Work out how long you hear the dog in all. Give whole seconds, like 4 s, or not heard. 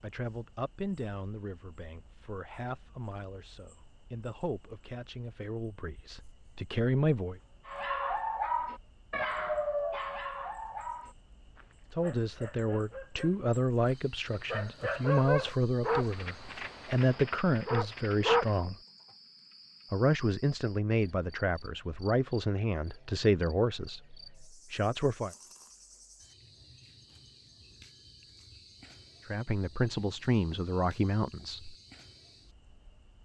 11 s.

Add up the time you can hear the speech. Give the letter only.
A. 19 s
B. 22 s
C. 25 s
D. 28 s
B.